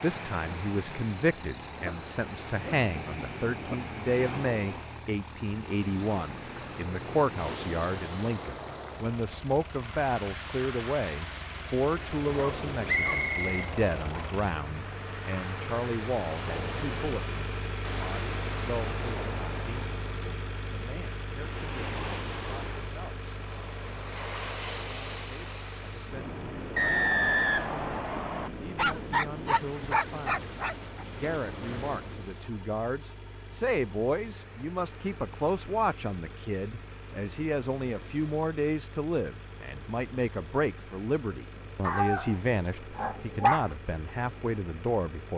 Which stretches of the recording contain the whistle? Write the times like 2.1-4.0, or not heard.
12.8-14.3, 26.8-28.5.